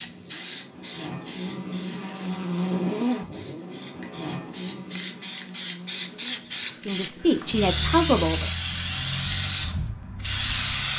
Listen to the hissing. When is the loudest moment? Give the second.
8 s.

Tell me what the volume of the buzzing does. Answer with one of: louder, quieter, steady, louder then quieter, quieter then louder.
louder then quieter.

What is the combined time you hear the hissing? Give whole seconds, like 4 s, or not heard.
11 s.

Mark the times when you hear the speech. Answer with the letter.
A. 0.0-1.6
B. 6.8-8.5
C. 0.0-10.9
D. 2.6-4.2
B.